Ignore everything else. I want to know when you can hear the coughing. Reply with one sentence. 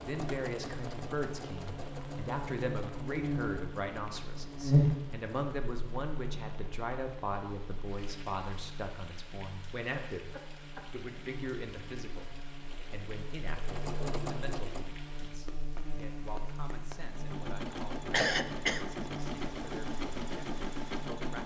The coughing can be heard from 4.0 to 5.0 s, from 9.9 to 10.9 s and from 18.1 to 18.9 s.